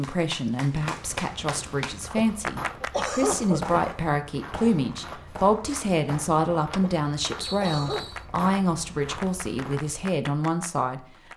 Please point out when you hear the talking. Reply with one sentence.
The talking can be heard from 0.0 to 11.3 s.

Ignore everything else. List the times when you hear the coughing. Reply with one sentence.
You can hear the coughing from 2.1 to 3.8 s and from 6.8 to 8.1 s.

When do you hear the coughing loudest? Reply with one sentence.
The loudest moment of the coughing is at 3 seconds.